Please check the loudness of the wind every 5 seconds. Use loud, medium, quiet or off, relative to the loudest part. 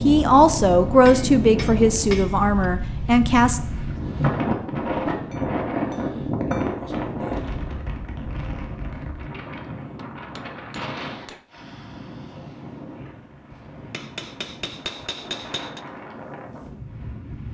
loud, loud, medium, medium.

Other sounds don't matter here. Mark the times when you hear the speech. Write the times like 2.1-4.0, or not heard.
0.0-3.6.